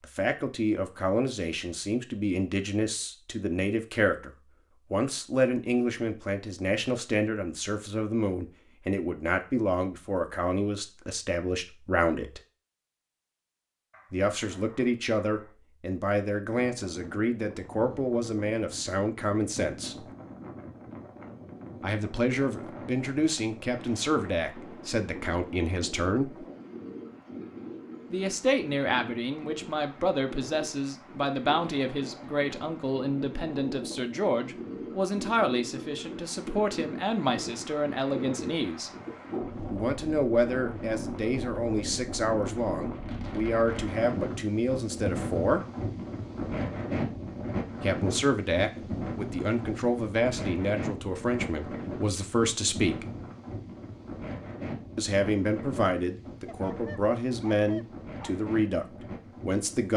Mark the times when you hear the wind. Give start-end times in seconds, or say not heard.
16.5-59.9.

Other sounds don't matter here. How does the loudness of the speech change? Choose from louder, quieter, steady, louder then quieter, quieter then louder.
steady.